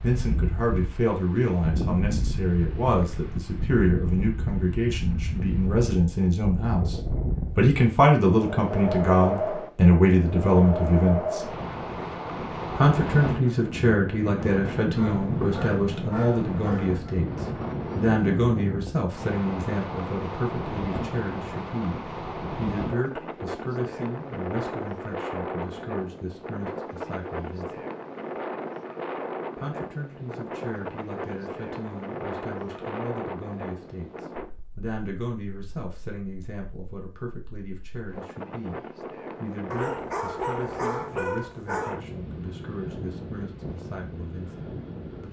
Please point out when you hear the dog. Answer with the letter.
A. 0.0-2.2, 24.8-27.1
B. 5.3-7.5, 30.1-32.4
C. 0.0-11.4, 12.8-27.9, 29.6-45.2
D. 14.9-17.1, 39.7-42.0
D.